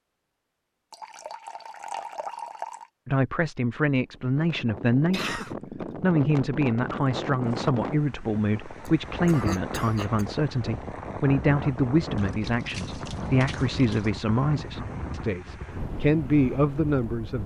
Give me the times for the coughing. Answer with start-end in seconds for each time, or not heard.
5.1-5.5, 8.8-10.2.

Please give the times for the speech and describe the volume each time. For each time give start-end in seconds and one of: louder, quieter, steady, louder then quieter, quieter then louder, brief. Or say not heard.
3.0-17.4 steady.